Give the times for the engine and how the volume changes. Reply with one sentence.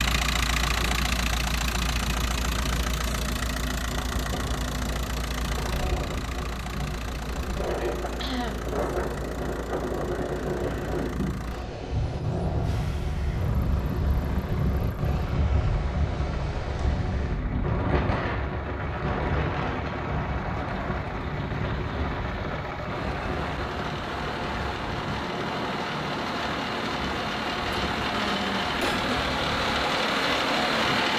The engine can be heard from 0.0 to 31.1 s, getting quieter then louder.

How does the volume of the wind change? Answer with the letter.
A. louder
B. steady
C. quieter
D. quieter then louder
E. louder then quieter
E.